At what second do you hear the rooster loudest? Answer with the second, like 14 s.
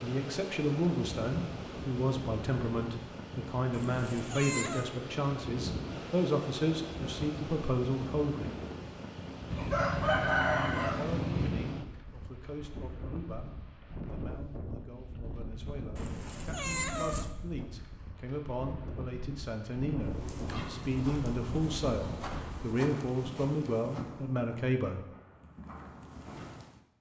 10 s.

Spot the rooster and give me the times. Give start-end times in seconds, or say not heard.
9.5-11.5.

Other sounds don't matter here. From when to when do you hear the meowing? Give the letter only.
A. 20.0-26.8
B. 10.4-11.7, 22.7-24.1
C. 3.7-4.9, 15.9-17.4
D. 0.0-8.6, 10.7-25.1
C.